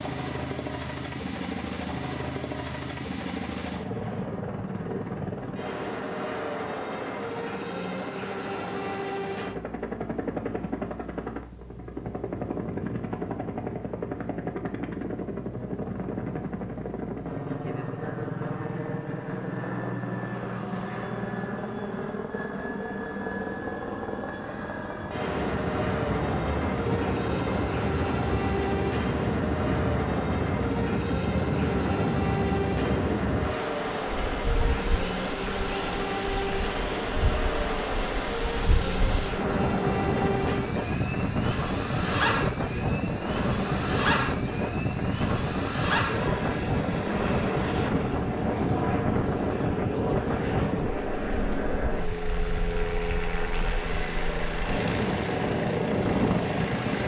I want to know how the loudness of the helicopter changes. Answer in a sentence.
The volume of the helicopter stays about the same.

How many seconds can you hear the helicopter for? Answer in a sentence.
You can hear the helicopter for 57 seconds altogether.